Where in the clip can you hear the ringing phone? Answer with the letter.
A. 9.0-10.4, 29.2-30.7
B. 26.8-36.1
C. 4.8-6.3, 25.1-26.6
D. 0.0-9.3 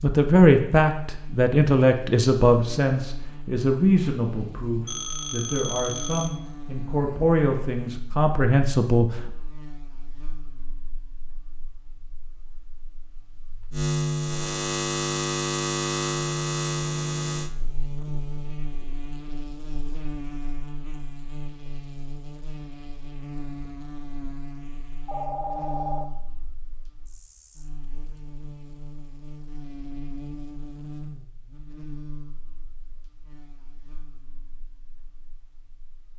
C.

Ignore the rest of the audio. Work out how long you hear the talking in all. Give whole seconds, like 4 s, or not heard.
9 s.